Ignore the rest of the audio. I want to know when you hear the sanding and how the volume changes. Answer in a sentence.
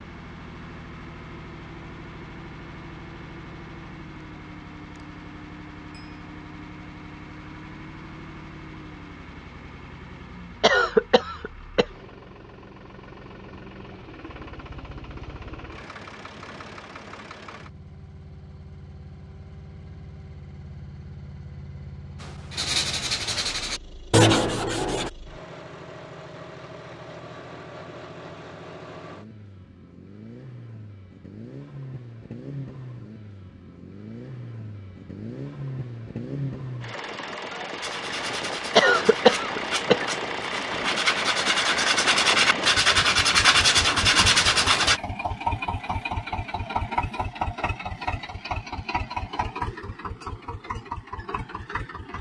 You can hear the sanding briefly from 22.2 to 25.1 s; and from 37.8 to 45.0 s, getting louder.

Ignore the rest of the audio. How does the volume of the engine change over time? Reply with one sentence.
The loudness of the engine goes up.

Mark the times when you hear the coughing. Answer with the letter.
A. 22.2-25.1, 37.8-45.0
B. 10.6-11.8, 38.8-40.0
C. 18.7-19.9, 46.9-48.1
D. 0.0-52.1
B.